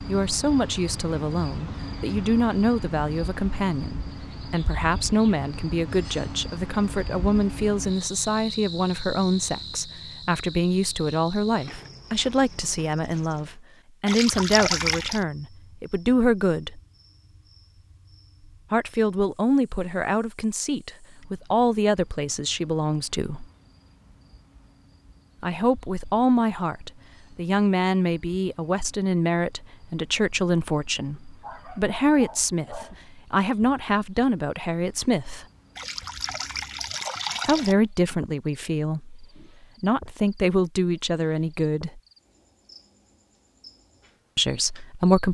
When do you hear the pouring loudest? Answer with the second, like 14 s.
15 s.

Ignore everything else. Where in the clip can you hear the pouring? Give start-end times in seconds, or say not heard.
14.1-15.2, 35.8-37.8.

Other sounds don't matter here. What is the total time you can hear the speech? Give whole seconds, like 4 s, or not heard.
37 s.